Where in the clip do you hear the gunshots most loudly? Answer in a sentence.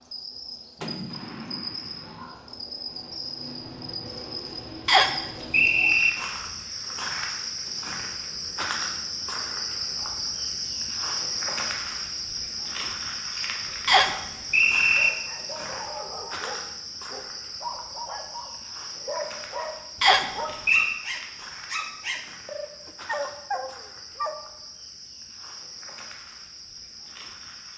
The volume of the gunshots peaks at 1 second.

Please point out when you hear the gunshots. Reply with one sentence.
The gunshots can be heard from 0.8 to 2.2 s.